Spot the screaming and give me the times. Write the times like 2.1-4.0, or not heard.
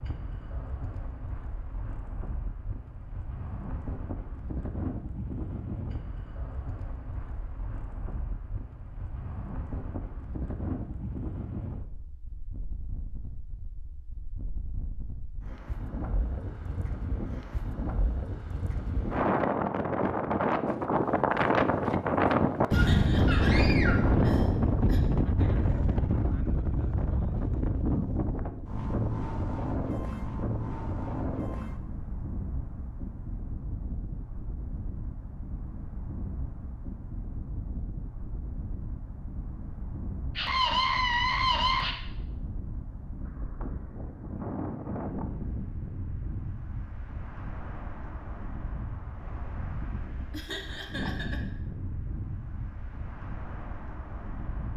22.7-24.1, 40.4-42.0.